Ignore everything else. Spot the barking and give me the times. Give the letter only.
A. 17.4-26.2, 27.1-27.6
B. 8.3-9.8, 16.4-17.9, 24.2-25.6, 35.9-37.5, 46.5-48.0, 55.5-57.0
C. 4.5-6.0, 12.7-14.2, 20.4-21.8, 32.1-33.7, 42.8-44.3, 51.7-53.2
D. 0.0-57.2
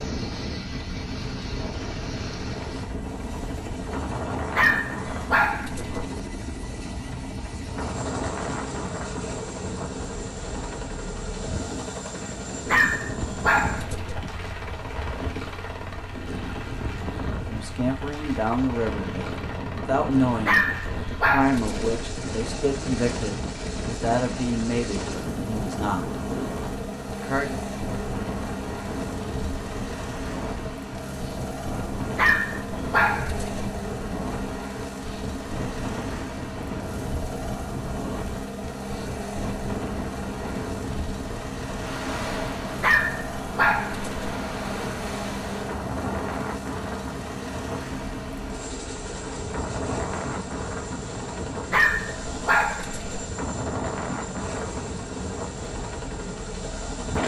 C.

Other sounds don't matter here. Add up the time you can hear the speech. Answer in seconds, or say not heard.
9 s.